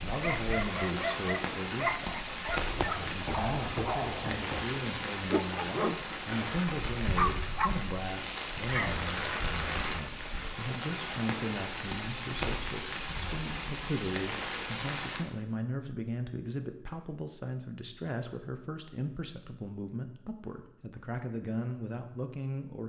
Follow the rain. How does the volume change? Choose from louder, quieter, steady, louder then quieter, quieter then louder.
steady.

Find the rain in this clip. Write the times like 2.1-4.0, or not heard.
0.0-15.2.